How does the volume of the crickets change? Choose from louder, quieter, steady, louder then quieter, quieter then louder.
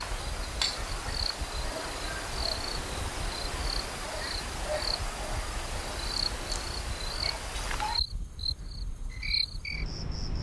steady.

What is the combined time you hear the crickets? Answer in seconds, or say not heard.
10 s.